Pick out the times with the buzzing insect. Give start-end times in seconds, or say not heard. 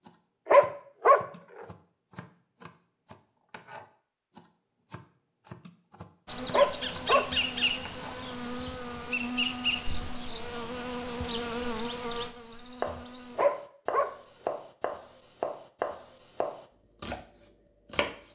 6.2-13.4.